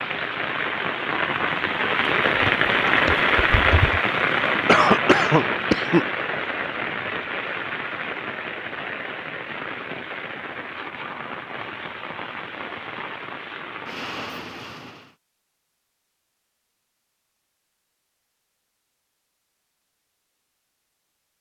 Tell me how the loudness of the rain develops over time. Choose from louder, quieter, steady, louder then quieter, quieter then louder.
quieter.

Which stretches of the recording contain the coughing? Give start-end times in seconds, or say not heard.
4.7-6.0.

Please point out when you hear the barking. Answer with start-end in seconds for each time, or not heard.
not heard.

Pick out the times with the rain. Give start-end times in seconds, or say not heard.
0.0-15.2.